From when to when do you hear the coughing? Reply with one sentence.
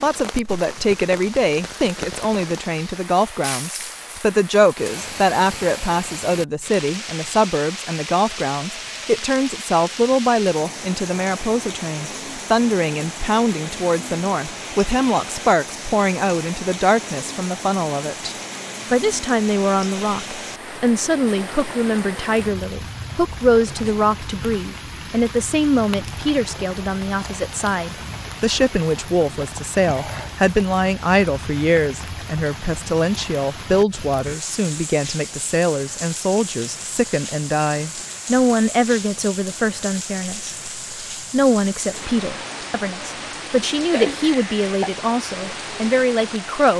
The coughing can be heard from 43.8 to 45.0 s.